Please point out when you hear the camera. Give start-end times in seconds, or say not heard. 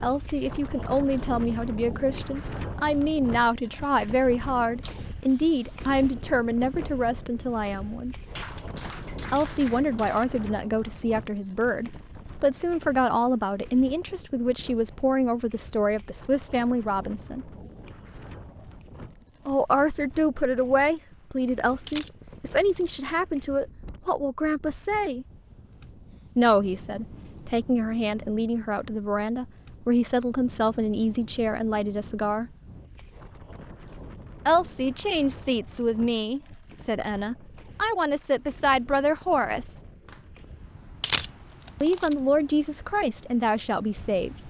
4.8-6.0, 21.9-23.0, 41.0-42.1.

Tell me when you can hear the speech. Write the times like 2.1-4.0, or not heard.
0.0-8.2, 9.3-17.4, 19.4-25.2, 26.4-32.5, 34.5-39.8, 41.8-44.4.